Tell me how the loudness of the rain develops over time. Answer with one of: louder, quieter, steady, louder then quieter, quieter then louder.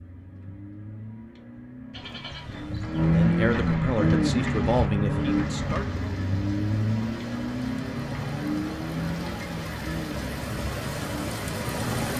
louder.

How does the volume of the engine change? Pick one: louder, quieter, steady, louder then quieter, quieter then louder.
louder then quieter.